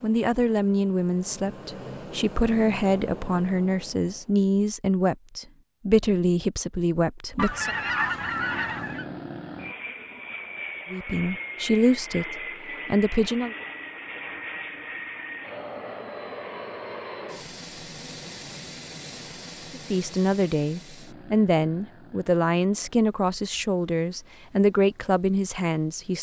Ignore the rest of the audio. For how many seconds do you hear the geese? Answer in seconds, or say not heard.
2 s.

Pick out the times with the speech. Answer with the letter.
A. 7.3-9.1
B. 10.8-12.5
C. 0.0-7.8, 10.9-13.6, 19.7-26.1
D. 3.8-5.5
C.